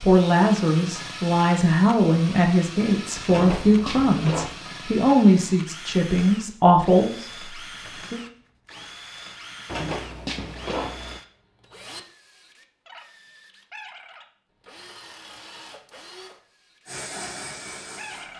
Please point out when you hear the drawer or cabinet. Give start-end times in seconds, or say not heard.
3.2-4.6, 9.7-11.2.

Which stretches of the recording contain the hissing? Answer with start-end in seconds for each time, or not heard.
16.9-18.3.